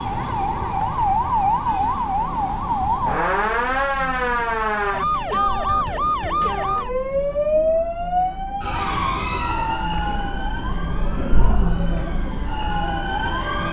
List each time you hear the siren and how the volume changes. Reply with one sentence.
You can hear the siren from 0.0 to 13.6 s, getting quieter.